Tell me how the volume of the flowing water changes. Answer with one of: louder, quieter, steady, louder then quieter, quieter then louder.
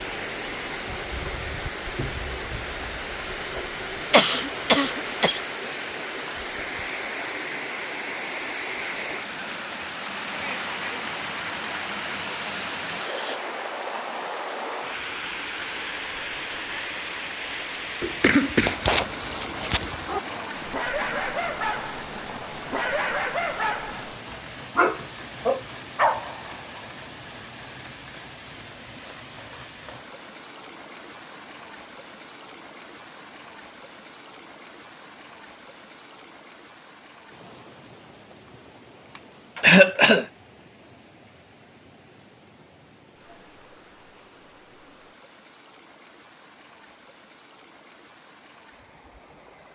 quieter.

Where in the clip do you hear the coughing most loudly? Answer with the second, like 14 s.
40 s.